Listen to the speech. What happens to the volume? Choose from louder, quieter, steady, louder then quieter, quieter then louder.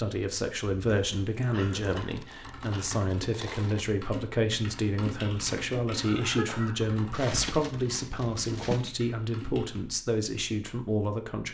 steady.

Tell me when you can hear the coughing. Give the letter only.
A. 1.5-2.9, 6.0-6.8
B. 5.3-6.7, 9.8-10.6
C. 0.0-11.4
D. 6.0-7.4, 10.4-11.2
A.